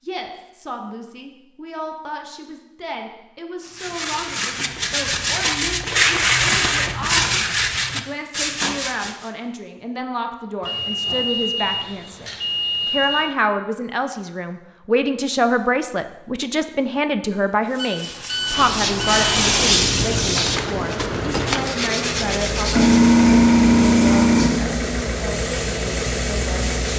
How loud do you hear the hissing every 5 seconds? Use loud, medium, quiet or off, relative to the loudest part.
off, off, off, loud, loud, quiet.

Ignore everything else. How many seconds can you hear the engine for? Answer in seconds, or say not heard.
9 s.